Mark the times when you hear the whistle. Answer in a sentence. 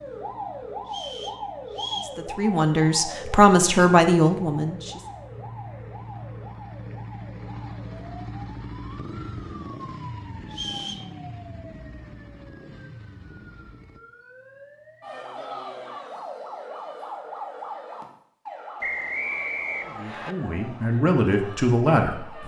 The whistle can be heard from 0.8 to 2.1 s, from 10.5 to 11.1 s and from 18.8 to 20.4 s.